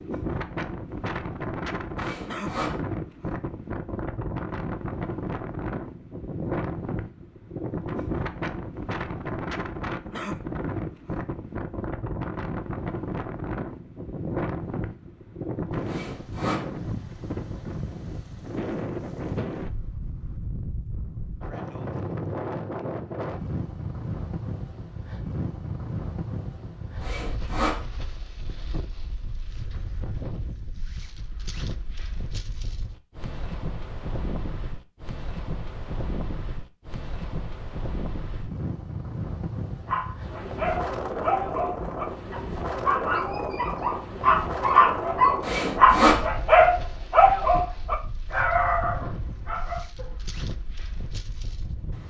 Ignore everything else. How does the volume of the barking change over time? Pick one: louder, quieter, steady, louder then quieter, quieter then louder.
louder then quieter.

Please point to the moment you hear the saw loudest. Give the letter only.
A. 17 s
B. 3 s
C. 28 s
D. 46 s
D.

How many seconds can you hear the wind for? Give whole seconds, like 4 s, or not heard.
52 s.